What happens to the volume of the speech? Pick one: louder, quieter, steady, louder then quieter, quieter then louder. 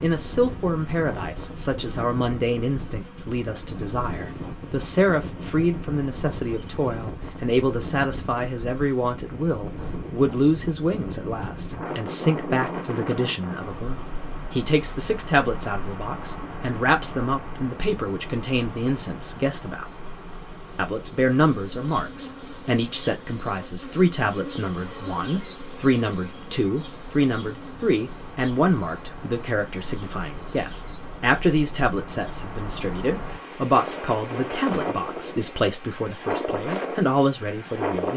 steady.